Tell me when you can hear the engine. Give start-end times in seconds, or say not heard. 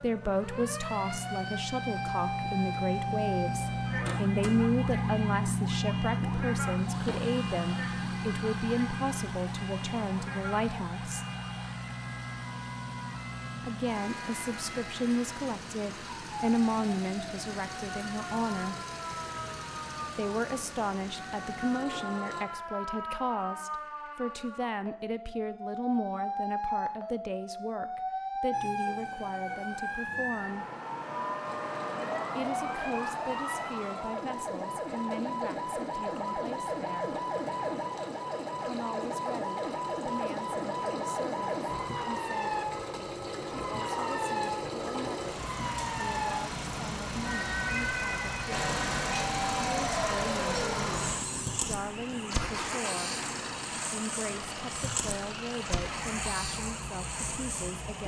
0.0-22.4, 31.4-58.0.